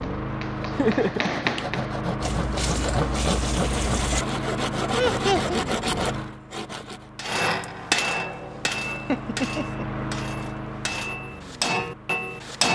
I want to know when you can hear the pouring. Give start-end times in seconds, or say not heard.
2.2-4.2.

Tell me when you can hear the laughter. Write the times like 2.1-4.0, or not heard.
0.8-1.4, 4.9-5.6, 9.1-10.1.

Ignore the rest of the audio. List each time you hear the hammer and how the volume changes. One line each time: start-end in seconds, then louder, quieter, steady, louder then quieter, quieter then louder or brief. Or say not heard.
0.0-1.9 brief
7.2-12.6 quieter then louder.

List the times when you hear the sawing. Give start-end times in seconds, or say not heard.
0.4-7.0.